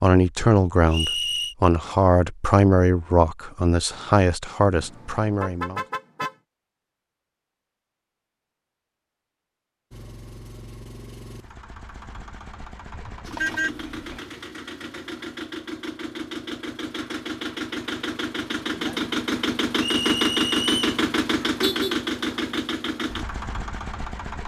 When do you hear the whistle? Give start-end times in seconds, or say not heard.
0.9-1.6, 19.8-20.9.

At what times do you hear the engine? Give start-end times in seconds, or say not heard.
9.9-24.4.